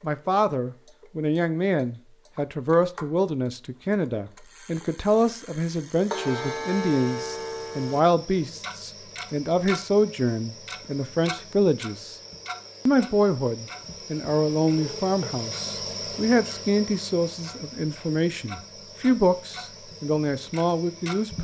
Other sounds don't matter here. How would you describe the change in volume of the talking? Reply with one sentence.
The volume of the talking stays about the same.